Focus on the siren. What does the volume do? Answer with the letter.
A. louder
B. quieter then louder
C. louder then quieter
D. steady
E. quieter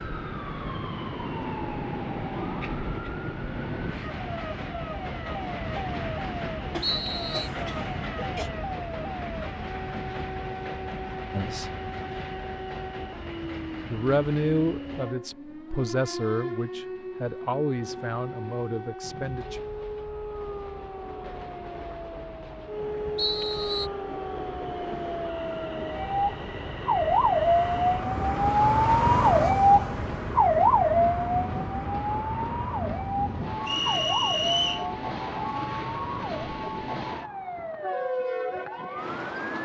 C.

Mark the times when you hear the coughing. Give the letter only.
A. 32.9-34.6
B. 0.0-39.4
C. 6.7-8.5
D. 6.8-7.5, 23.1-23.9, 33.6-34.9
C.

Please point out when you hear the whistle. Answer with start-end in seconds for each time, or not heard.
6.8-7.5, 23.1-23.9, 33.6-34.9.